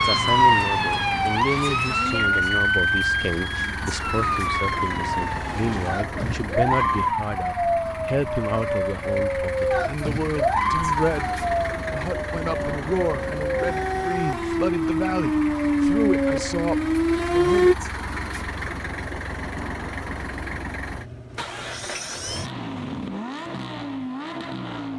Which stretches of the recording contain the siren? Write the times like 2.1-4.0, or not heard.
0.0-17.8.